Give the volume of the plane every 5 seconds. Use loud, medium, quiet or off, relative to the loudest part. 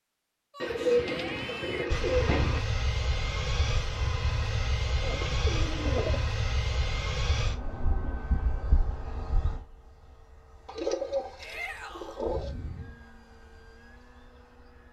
loud, loud, quiet.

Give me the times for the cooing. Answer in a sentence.
You can hear the cooing from 0.6 to 2.6 s, from 5.0 to 6.2 s and from 10.7 to 12.6 s.